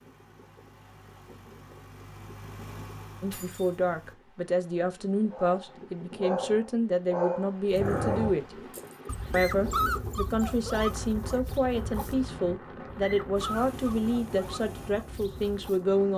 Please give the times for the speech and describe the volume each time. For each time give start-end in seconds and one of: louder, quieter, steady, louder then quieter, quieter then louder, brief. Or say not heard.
3.2-8.6 steady
9.3-16.1 steady.